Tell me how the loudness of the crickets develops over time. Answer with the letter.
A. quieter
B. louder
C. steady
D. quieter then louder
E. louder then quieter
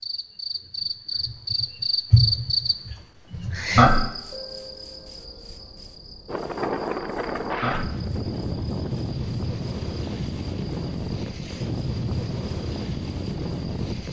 A.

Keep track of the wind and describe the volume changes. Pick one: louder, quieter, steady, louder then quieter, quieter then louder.
steady.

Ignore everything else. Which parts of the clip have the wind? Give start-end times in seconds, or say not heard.
6.2-14.0.